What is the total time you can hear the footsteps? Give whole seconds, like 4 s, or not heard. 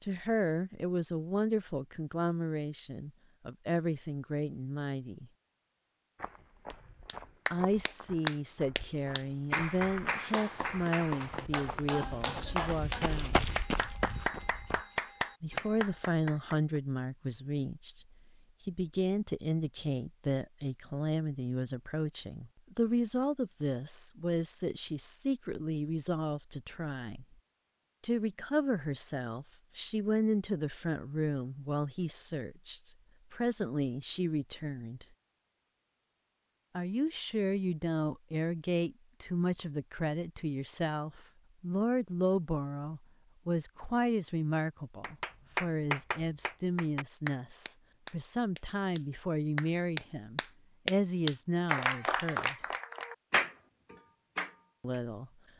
9 s.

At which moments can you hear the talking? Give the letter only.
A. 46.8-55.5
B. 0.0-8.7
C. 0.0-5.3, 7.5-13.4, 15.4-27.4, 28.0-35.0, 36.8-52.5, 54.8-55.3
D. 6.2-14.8
C.